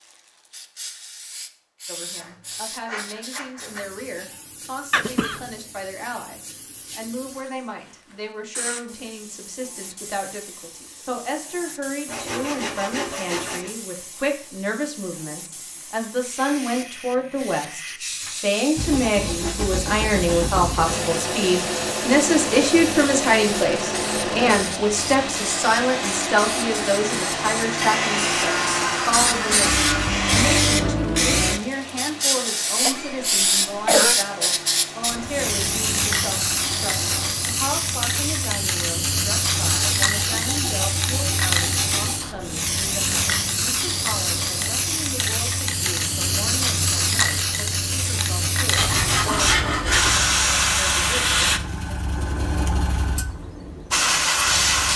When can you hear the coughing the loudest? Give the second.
34 s.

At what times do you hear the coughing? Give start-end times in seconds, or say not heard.
4.9-5.5, 32.8-34.2.